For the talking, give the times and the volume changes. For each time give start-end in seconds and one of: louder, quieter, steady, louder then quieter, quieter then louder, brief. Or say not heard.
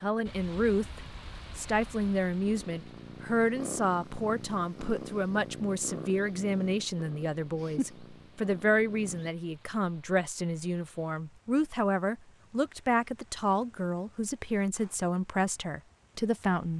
0.0-16.7 steady.